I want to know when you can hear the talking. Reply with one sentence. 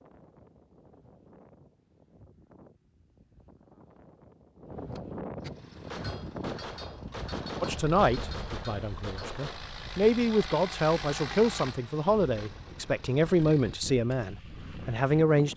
You can hear the talking from 7.6 to 15.5 s.